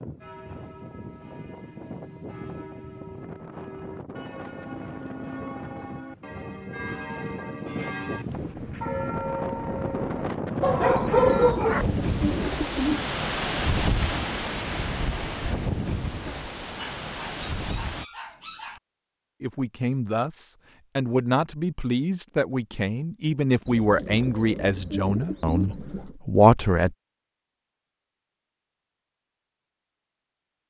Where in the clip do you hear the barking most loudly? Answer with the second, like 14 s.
11 s.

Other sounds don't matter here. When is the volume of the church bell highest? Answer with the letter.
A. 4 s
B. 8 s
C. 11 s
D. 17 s
C.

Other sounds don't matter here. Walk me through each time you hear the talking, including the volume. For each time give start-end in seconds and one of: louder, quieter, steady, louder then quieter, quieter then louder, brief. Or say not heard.
19.4-26.9 louder.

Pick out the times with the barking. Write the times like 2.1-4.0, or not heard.
10.6-11.8, 16.8-18.8.